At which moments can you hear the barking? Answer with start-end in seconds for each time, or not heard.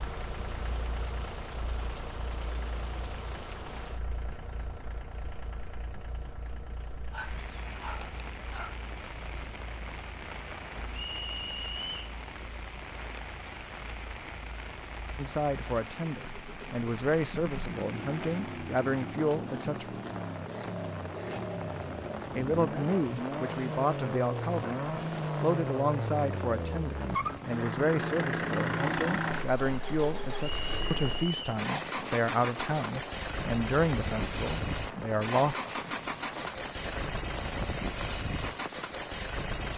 7.1-8.8.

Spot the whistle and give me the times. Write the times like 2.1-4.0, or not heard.
10.9-12.1, 30.4-31.6.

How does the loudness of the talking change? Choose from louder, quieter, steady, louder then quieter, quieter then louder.
steady.